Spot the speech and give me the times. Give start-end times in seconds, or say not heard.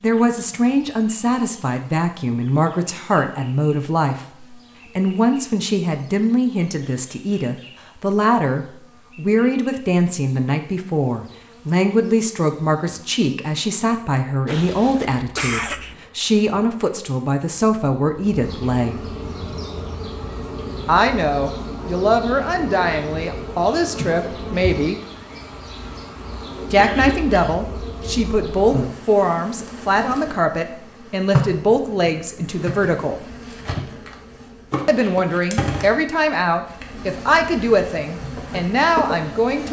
0.0-19.0, 20.9-25.0, 26.7-33.2, 34.9-39.6.